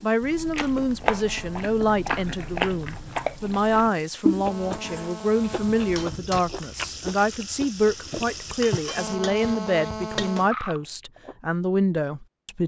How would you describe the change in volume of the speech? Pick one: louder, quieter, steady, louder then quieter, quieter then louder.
steady.